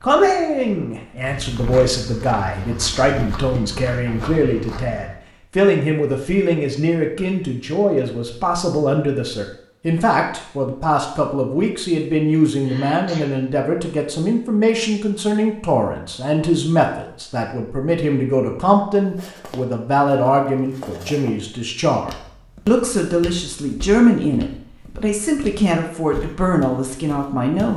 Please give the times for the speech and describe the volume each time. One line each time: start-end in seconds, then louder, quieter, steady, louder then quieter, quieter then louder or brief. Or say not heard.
0.0-27.7 steady.